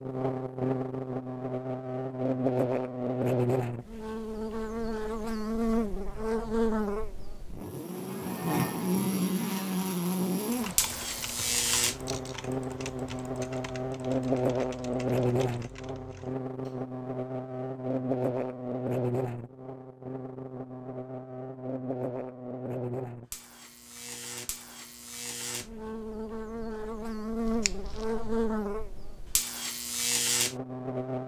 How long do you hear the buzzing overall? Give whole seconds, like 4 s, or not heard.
31 s.